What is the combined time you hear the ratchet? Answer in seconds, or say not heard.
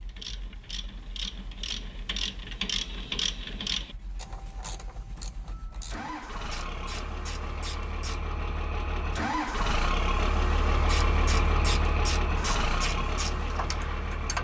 12 s.